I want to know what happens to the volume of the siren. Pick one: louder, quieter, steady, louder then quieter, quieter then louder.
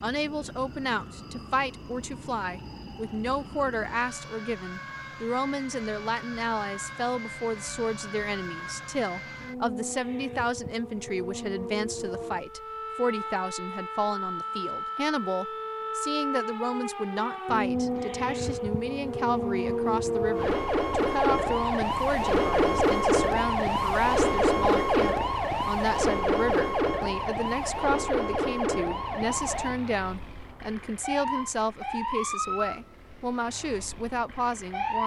louder then quieter.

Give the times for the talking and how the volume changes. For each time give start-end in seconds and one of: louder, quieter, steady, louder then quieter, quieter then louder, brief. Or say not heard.
0.0-35.0 steady.